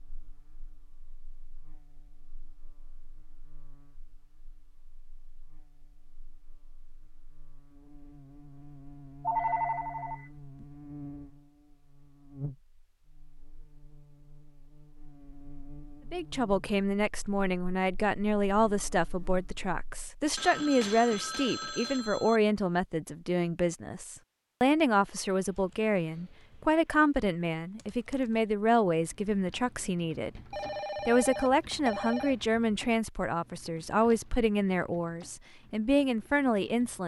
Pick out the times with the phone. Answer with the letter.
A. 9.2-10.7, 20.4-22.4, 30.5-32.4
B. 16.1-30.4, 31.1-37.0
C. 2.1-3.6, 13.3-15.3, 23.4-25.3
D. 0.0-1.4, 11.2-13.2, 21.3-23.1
A.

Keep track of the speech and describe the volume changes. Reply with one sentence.
The loudness of the speech stays about the same.